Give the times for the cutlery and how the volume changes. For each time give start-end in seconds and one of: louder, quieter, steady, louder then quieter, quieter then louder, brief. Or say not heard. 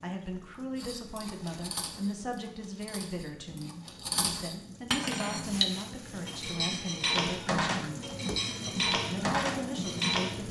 0.8-10.3 louder.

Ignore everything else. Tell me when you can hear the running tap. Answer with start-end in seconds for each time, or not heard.
0.0-10.4.